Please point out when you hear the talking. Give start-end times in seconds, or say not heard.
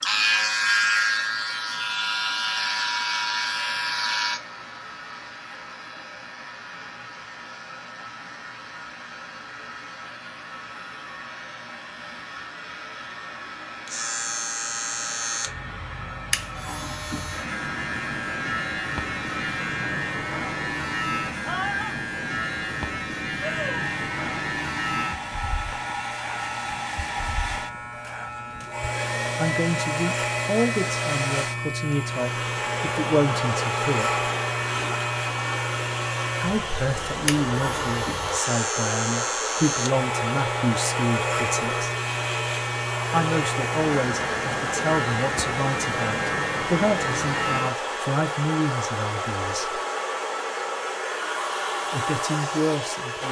29.4-34.2, 36.4-41.9, 43.1-49.8, 51.9-53.2.